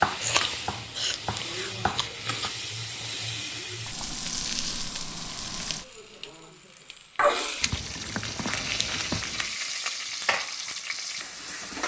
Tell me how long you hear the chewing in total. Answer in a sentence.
The chewing can be heard for 4 seconds in total.